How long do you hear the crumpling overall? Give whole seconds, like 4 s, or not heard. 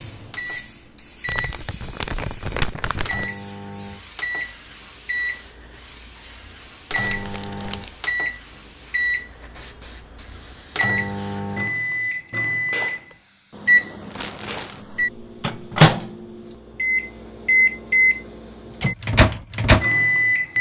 4 s.